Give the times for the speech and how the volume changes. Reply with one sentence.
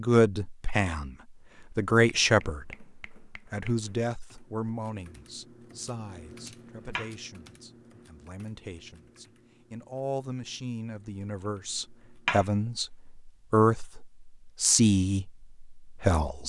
The speech can be heard from 0.0 to 16.4 s, getting quieter then louder.